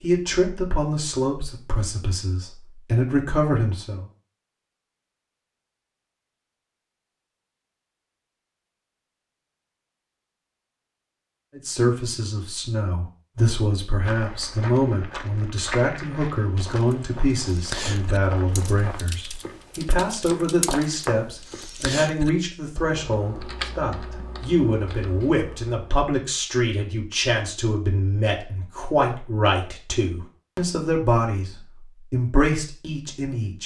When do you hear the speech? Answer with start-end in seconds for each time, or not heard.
0.0-4.0, 11.6-33.6.